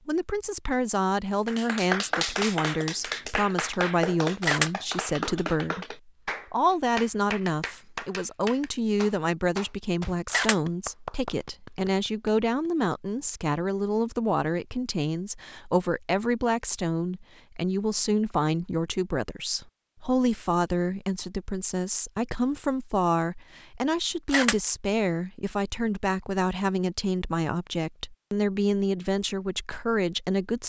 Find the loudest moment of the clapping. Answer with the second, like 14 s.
2 s.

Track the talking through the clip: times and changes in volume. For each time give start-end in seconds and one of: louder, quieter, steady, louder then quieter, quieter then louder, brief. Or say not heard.
0.1-30.6 steady.